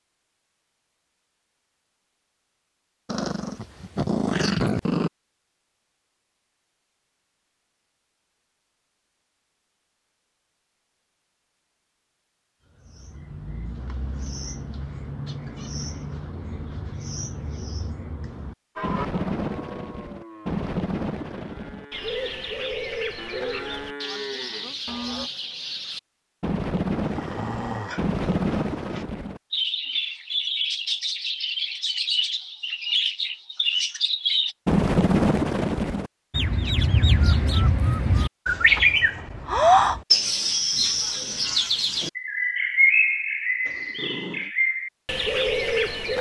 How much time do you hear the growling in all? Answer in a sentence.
The growling can be heard for 5 seconds in total.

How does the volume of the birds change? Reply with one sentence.
The loudness of the birds goes up.